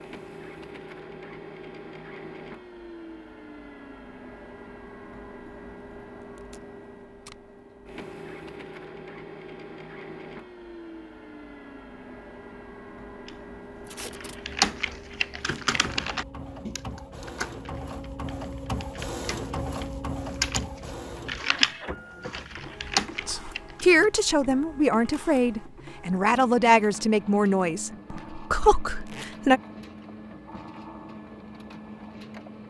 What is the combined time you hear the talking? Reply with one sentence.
The talking can be heard for 6 seconds in total.